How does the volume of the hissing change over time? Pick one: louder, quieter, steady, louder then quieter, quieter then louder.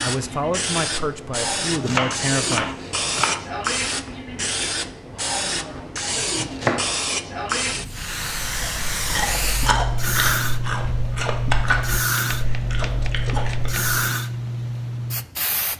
steady.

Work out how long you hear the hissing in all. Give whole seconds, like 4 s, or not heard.
16 s.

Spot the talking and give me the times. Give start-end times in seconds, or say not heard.
0.0-2.7.